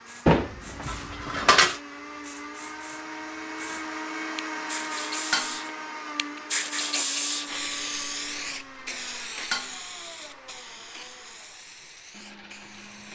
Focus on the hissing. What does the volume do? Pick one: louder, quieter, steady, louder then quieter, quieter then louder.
louder then quieter.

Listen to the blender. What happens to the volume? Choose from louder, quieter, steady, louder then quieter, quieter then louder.
louder then quieter.